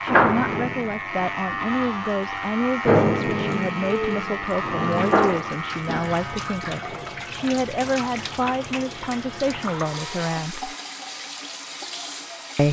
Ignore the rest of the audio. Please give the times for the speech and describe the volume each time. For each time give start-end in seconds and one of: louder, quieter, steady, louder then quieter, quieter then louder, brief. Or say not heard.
0.0-10.8 steady.